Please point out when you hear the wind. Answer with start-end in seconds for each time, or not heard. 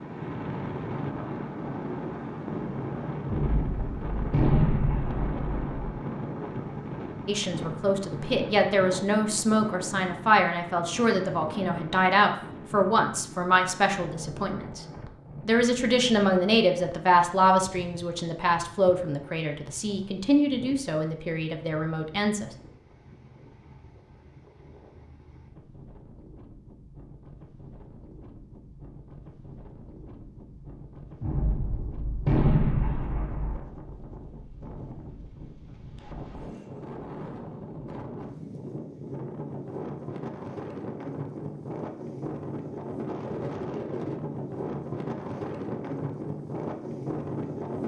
0.0-47.8.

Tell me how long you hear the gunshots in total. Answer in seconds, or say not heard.
5 s.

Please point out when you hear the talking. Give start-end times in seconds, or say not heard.
7.2-14.8, 15.4-22.5.